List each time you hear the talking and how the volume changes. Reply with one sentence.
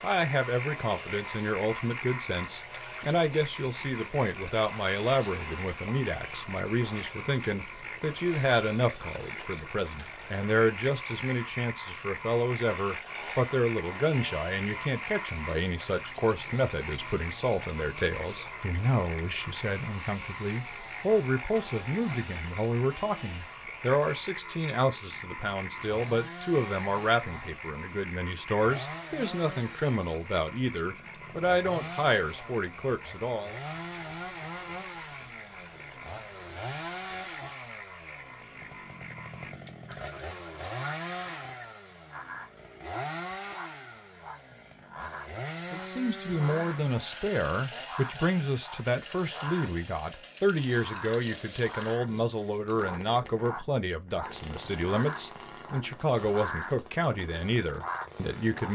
The talking can be heard from 0.0 to 33.5 s, at a steady volume; and from 45.7 to 58.6 s, at a steady volume.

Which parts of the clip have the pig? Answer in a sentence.
You can't hear the pig here.